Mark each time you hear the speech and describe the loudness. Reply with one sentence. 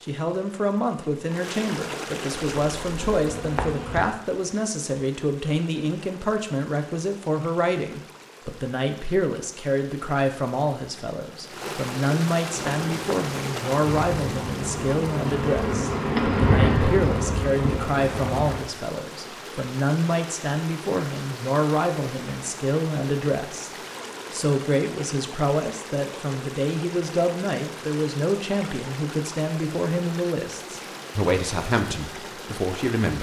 You can hear the speech from 0.0 to 33.1 s, at a steady volume.